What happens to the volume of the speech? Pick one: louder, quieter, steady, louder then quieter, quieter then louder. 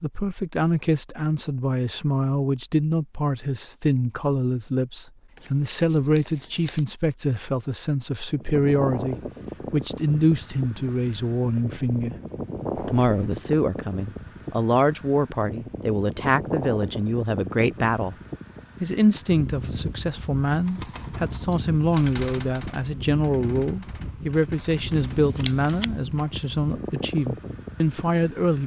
steady.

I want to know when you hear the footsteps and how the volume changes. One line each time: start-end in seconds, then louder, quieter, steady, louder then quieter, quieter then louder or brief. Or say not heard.
not heard.